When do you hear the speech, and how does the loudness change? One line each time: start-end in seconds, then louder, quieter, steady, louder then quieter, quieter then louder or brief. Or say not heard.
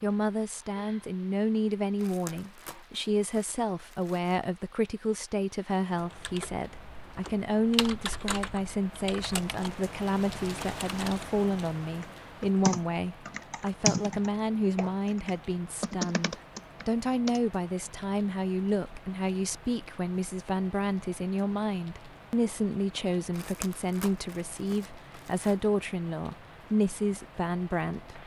0.0-28.2 steady.